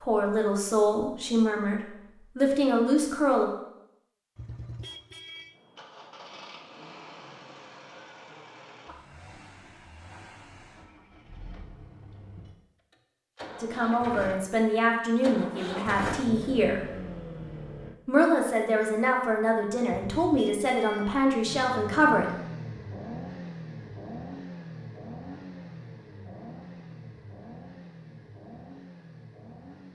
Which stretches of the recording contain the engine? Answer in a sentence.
You can hear the engine from 5.5 to 17.9 s and from 21.4 to 29.9 s.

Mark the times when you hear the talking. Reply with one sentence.
You can hear the talking from 0.0 to 3.5 s, from 13.6 to 16.8 s and from 18.1 to 22.3 s.